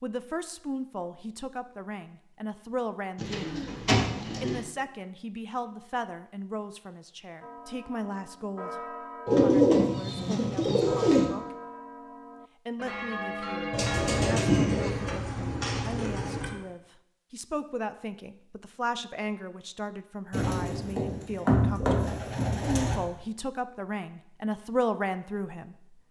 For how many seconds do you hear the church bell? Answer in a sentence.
You can hear the church bell for 8 seconds altogether.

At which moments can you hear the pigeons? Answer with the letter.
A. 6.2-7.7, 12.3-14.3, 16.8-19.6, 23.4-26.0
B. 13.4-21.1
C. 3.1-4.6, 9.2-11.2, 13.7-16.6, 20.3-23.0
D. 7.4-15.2
C.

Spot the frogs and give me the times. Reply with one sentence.
You can't hear the frogs here.